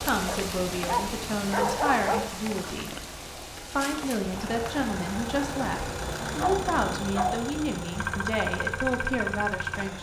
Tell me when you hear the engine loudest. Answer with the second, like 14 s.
9 s.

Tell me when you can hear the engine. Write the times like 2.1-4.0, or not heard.
4.2-9.9.